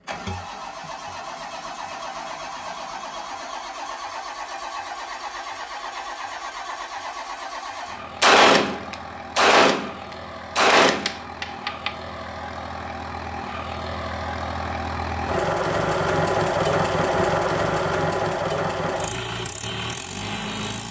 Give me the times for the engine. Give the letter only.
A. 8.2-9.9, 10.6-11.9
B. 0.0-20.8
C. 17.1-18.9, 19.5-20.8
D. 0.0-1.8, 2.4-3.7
B.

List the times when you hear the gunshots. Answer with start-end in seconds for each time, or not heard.
8.2-9.9, 10.6-11.9.